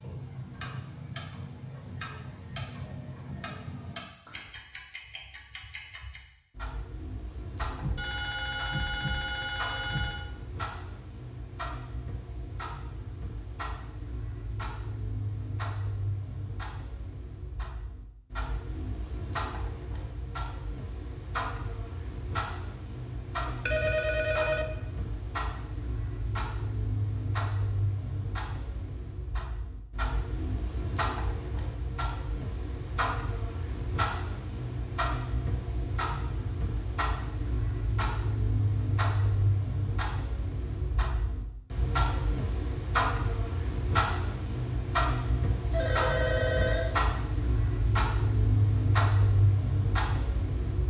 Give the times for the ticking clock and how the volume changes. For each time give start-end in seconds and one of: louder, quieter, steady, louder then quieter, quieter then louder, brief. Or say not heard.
0.0-50.8 louder.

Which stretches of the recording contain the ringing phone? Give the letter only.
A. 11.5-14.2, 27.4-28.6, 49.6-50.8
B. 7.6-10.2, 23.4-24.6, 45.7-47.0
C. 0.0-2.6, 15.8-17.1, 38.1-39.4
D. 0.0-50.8
B.